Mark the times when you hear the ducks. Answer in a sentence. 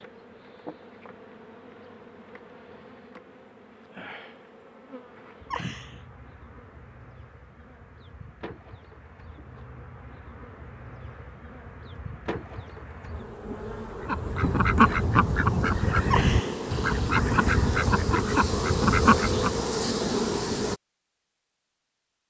The ducks can be heard from 14.0 to 19.6 s.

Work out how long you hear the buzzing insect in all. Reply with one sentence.
You can hear the buzzing insect for 21 seconds altogether.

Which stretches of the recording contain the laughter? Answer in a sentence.
The laughter can be heard from 5.5 to 6.0 s and from 16.1 to 16.8 s.